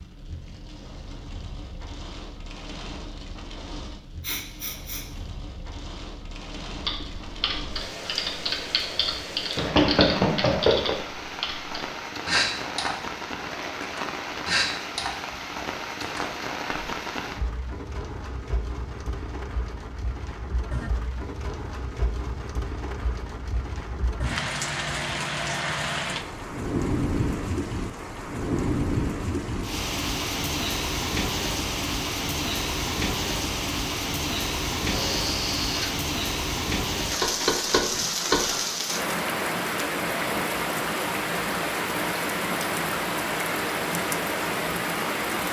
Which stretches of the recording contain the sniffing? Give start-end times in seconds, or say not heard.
4.2-5.0, 34.9-35.9.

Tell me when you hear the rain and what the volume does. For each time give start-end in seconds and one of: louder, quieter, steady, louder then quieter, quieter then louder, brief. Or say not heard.
0.0-45.4 louder.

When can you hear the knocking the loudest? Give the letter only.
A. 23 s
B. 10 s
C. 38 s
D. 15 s
B.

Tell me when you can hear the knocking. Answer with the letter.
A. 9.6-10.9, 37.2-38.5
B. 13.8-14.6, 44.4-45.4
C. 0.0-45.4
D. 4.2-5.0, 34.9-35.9
A.